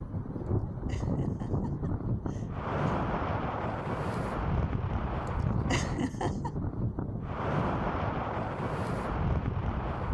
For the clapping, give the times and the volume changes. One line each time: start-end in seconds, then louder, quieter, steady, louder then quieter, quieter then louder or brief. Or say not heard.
not heard.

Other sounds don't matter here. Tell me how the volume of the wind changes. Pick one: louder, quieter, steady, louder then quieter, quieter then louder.
steady.